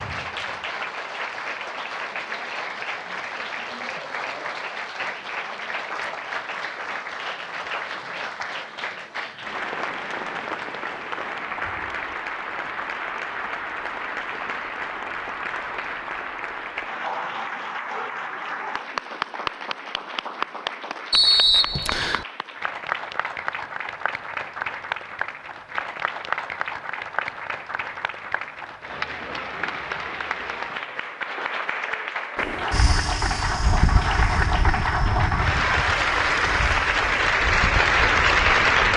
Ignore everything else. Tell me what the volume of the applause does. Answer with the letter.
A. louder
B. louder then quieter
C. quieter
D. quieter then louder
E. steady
A.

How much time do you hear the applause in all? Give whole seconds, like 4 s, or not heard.
39 s.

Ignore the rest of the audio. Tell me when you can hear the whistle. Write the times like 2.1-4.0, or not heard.
21.1-22.2.